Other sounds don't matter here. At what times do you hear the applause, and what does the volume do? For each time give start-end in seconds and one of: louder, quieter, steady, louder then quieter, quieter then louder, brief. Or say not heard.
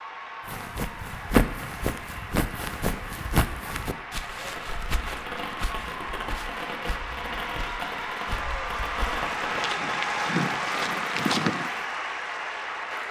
0.0-13.0 louder.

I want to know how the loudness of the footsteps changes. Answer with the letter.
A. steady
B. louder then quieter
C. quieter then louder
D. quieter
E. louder
C.